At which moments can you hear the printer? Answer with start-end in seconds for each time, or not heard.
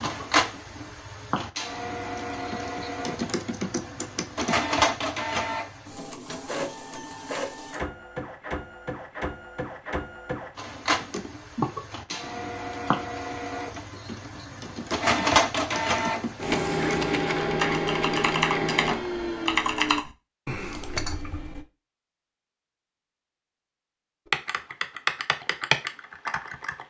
0.0-20.1.